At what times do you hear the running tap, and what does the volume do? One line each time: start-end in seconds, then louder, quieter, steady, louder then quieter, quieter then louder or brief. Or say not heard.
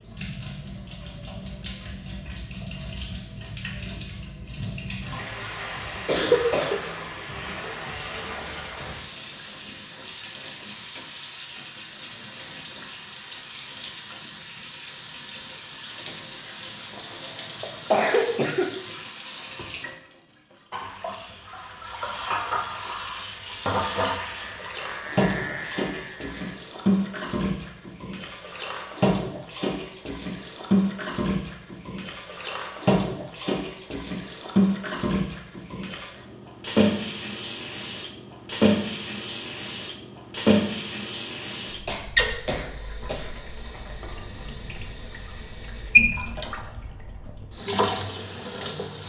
0.0-49.0 louder.